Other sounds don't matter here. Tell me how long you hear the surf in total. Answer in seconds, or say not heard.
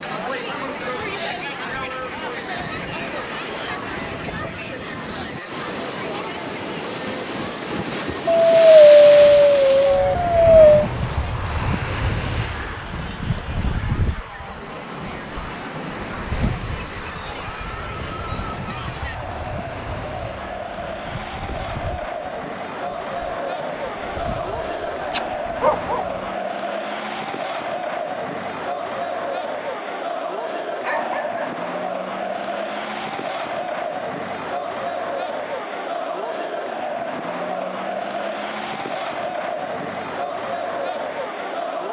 26 s.